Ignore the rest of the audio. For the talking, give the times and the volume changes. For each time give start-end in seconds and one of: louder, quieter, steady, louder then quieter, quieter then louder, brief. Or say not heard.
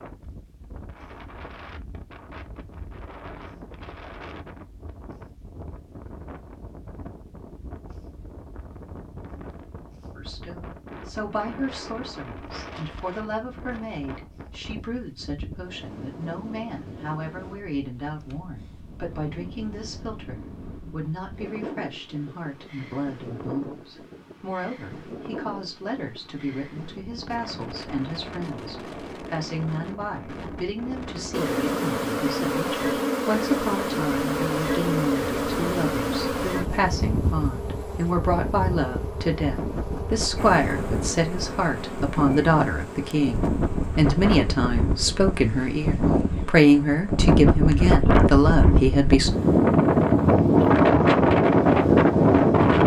10.2-49.3 louder.